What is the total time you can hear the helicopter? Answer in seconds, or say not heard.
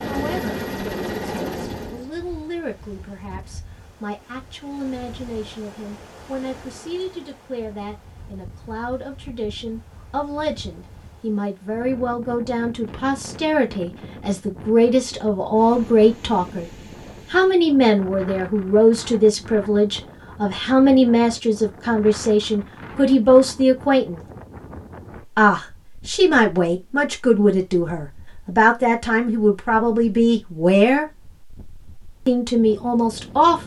2 s.